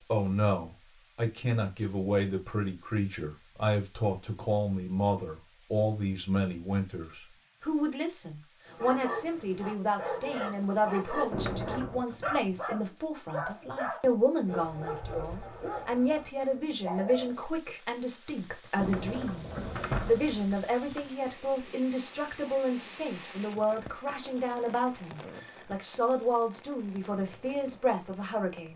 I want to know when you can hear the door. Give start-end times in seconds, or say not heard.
11.3-12.1, 18.8-21.1.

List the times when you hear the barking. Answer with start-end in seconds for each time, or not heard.
8.7-17.4.